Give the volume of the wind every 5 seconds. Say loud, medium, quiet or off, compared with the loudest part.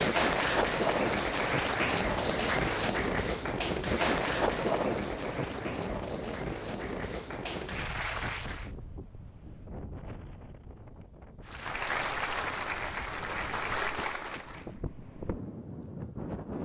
loud, medium, quiet, medium.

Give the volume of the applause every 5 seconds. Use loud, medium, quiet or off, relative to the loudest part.
loud, medium, loud, off.